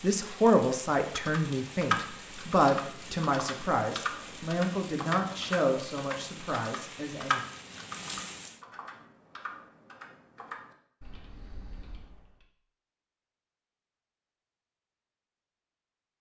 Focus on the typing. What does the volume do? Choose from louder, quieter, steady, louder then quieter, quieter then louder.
quieter.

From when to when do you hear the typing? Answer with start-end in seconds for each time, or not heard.
0.7-12.4.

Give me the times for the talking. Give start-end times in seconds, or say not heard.
0.0-7.4.